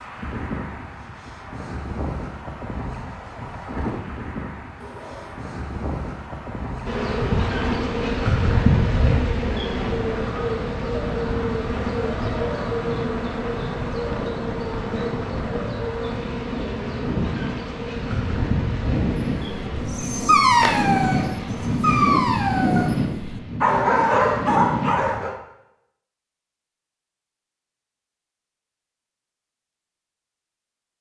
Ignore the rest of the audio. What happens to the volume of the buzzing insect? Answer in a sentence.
The volume of the buzzing insect goes down.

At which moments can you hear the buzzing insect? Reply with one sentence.
You can hear the buzzing insect from 6.8 to 21.8 s.